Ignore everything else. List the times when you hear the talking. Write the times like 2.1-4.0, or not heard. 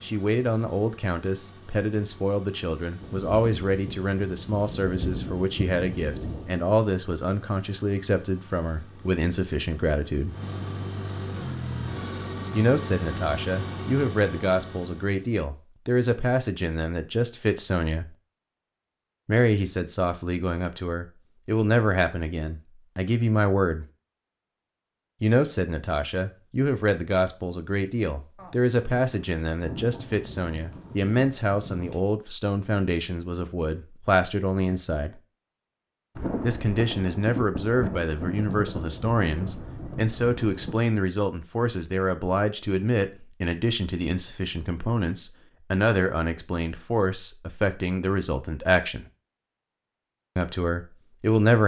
0.0-10.3, 12.5-18.1, 19.2-23.9, 25.2-35.2, 36.4-49.0, 50.4-51.6.